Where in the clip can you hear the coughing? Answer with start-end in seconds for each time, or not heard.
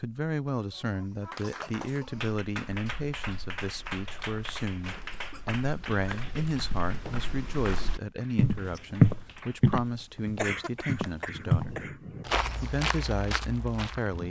0.5-2.4, 4.8-7.2, 10.3-12.2.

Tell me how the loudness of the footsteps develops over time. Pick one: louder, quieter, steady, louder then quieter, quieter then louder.
louder then quieter.